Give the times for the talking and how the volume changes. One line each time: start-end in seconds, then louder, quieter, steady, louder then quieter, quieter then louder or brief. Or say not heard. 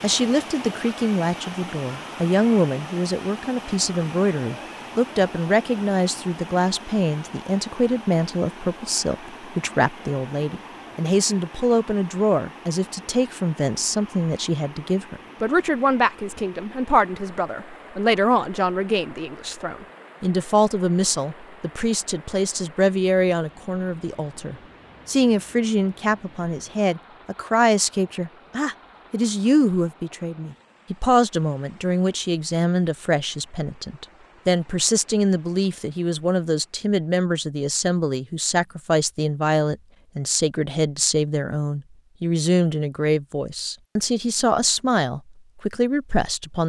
0.0-46.6 steady.